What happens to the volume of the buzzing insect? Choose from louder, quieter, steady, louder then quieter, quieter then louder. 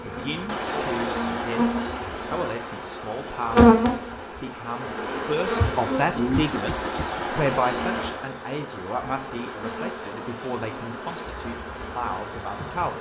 louder then quieter.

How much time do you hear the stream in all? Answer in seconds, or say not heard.
8 s.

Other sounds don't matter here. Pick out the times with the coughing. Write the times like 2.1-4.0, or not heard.
6.3-7.2.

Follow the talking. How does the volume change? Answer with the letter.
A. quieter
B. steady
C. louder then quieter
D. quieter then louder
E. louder
C.